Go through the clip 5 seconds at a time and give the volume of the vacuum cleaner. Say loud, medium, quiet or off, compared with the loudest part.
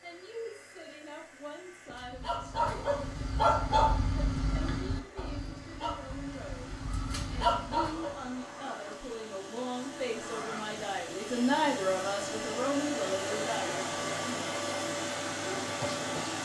quiet, quiet, loud, loud.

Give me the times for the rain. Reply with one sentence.
The rain can't be heard in this clip.